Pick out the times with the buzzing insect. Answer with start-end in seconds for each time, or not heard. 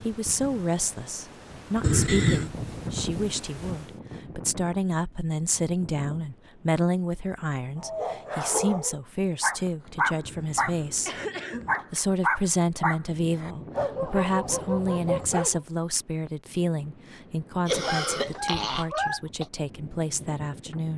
not heard.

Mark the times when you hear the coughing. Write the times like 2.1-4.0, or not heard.
1.8-2.5, 10.2-11.8, 17.6-19.4.